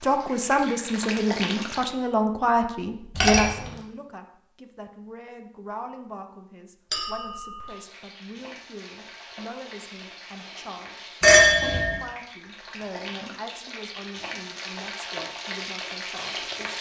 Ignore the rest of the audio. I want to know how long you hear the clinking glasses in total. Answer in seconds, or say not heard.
2 s.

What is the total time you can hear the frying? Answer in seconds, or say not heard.
11 s.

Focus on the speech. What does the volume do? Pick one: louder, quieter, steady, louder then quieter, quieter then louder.
quieter.